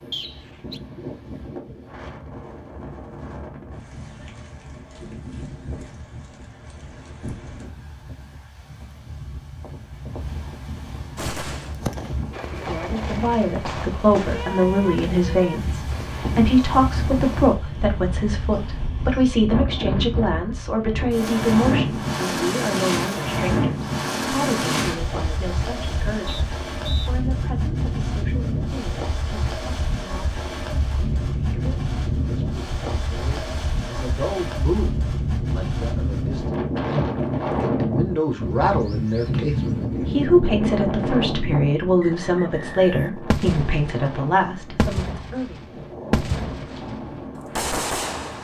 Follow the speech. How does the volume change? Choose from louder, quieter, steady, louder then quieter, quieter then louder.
quieter then louder.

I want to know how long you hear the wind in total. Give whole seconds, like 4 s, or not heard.
48 s.